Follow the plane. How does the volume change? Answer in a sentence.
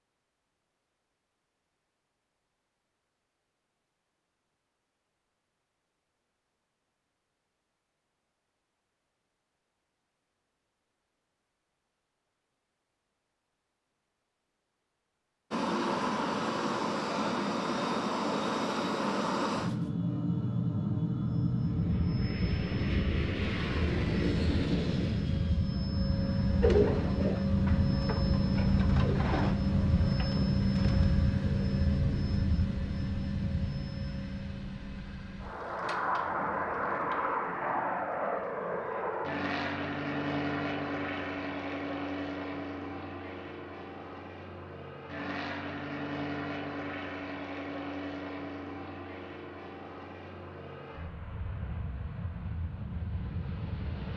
The loudness of the plane goes down.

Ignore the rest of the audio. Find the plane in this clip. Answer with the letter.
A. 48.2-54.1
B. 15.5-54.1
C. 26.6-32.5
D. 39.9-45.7
B.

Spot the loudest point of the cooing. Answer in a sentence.
The volume of the cooing peaks at 27 seconds.